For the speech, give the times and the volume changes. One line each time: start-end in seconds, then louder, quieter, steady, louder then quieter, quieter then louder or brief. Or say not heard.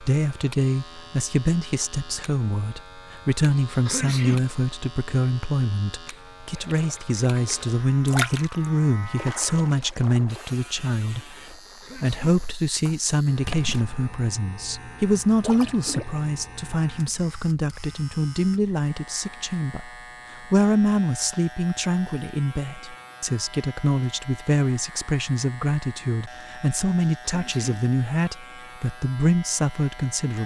0.0-30.4 steady.